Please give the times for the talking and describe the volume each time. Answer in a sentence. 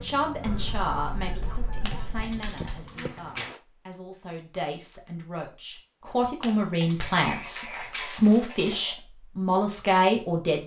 You can hear the talking from 0.0 to 10.6 s, getting quieter then louder.